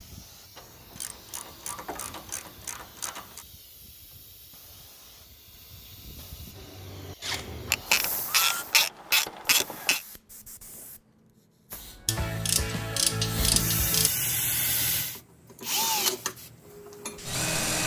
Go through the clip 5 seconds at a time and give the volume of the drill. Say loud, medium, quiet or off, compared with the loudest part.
off, medium, off, loud.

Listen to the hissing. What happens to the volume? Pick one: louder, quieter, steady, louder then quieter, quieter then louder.
louder.